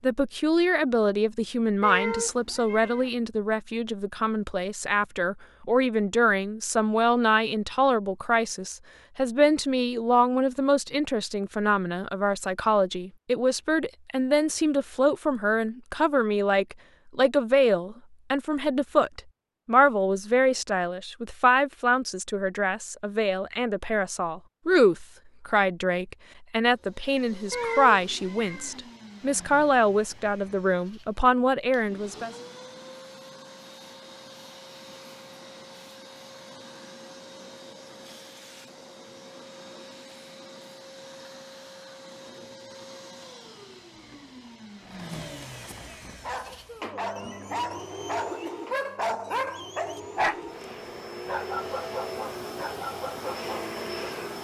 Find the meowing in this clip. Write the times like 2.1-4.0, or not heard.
1.8-3.1, 27.5-28.8.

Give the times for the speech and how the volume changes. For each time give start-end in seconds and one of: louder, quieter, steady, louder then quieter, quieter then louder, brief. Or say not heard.
0.0-32.3 steady.